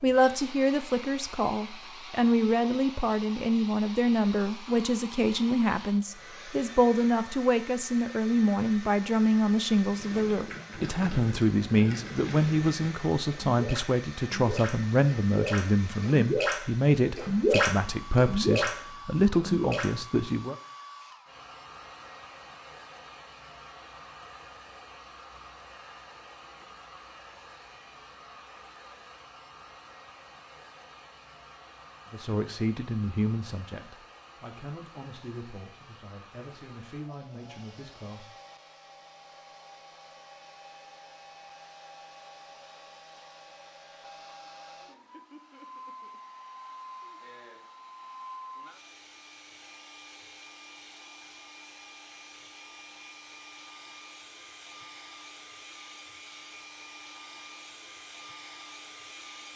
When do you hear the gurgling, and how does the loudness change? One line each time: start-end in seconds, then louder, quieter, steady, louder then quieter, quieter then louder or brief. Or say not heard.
9.8-16.6 louder
17.1-19.9 brief.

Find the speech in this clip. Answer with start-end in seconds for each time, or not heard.
0.0-20.6, 32.1-38.3.